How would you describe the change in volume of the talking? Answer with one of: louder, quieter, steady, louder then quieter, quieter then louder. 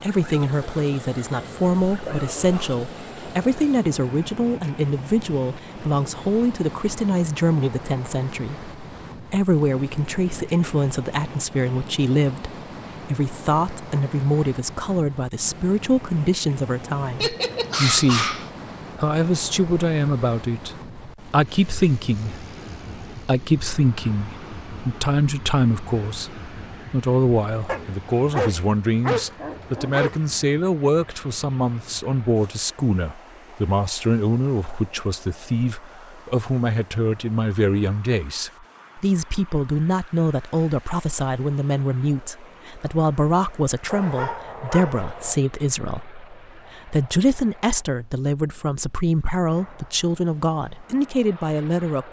steady.